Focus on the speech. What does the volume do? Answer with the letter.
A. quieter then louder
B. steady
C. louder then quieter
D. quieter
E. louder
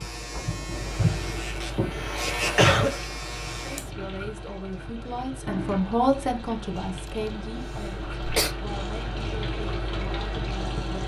C.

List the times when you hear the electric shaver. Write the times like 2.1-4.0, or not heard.
0.0-3.9.